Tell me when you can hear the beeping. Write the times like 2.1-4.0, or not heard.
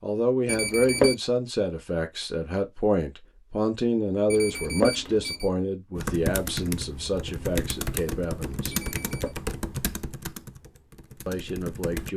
0.5-1.1, 4.3-5.5, 8.7-9.3.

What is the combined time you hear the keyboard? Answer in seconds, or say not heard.
6 s.